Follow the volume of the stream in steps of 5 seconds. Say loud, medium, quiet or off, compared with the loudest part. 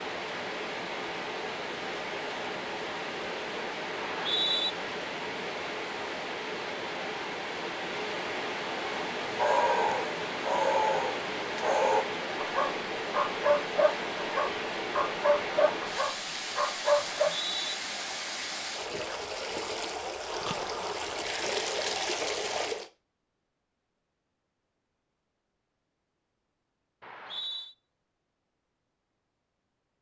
loud, loud, loud, loud, loud, off.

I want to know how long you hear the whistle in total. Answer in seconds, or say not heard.
2 s.